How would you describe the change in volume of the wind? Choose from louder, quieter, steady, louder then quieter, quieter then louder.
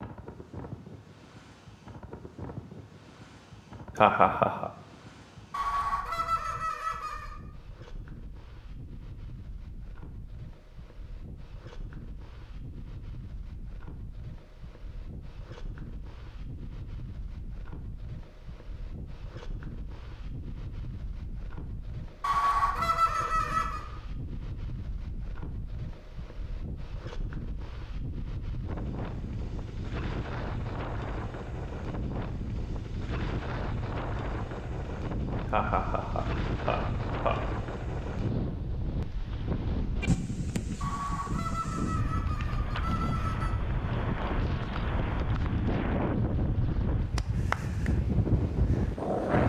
louder.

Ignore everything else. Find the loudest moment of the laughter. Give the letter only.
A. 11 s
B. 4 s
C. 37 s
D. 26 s
B.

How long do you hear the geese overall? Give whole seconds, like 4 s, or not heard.
6 s.